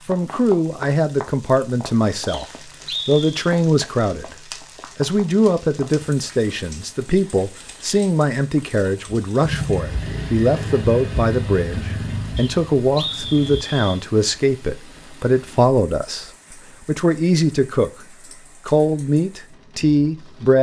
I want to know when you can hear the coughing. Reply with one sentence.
The coughing can't be heard in this clip.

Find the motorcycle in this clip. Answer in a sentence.
You can hear the motorcycle from 9.4 to 13.6 s.